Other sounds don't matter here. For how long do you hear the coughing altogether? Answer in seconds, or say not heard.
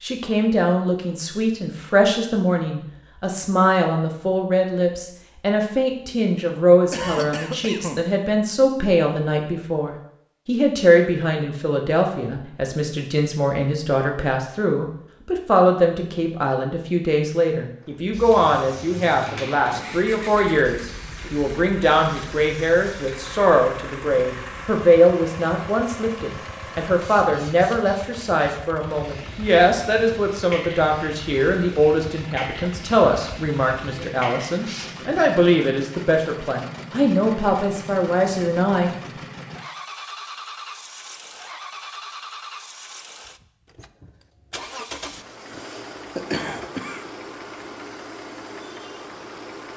3 s.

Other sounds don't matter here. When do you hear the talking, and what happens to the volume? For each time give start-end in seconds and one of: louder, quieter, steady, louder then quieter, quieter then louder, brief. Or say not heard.
0.0-38.9 steady.